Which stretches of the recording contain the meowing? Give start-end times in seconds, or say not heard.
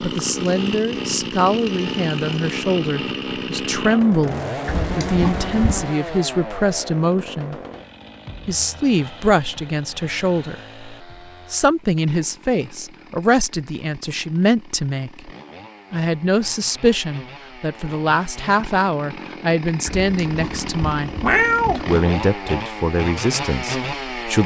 4.7-5.8, 19.9-21.9.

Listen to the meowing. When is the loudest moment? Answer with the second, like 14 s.
21 s.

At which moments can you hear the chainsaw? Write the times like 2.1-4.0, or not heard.
0.0-24.4.